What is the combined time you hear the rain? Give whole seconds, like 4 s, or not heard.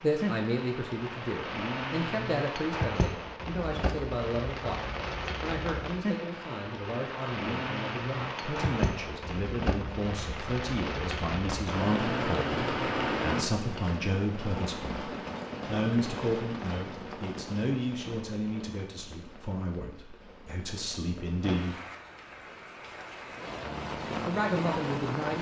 25 s.